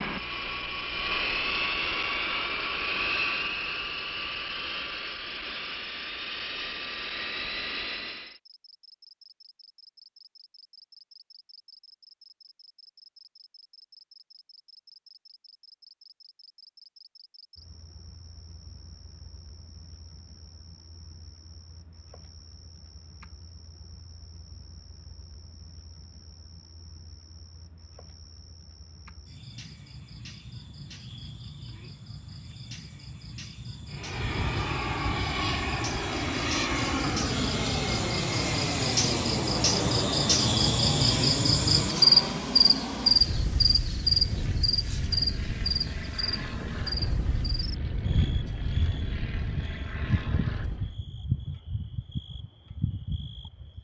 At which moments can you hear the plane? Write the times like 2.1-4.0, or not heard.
0.0-8.3, 33.9-51.0.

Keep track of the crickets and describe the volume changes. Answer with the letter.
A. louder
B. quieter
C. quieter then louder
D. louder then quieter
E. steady
D.